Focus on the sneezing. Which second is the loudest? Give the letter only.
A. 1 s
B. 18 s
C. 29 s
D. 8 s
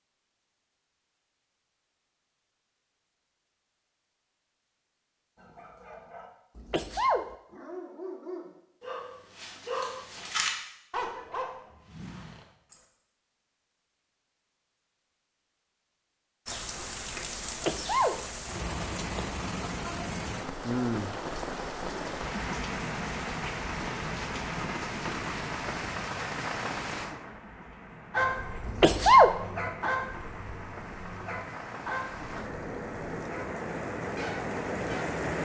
C.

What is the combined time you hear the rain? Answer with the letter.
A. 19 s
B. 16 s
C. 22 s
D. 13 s
A.